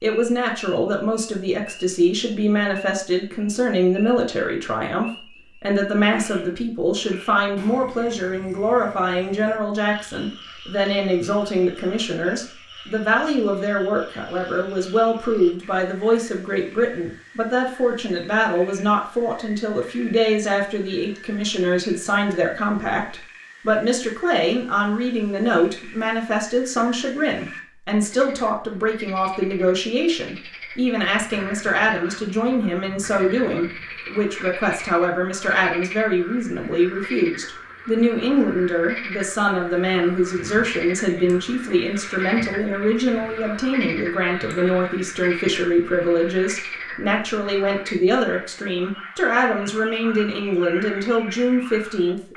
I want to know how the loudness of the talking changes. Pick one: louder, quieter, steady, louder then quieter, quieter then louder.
steady.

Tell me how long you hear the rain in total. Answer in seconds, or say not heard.
not heard.